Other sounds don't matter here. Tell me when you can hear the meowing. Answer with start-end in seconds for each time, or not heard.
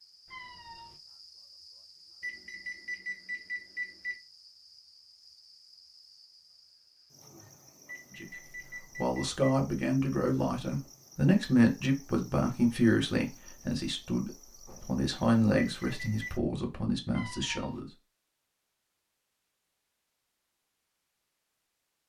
0.2-1.0, 17.1-17.8.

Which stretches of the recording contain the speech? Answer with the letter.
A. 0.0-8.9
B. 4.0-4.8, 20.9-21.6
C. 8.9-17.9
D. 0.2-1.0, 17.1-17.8
C.